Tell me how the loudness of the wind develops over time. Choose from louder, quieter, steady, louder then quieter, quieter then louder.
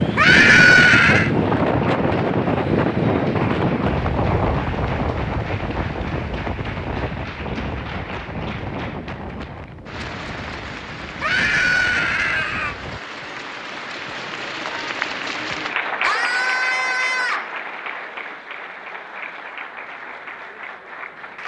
quieter.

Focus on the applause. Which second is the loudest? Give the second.
16 s.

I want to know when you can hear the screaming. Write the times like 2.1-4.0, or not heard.
0.1-1.3, 11.2-12.8, 16.0-17.5.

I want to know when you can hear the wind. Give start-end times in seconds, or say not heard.
0.0-13.0.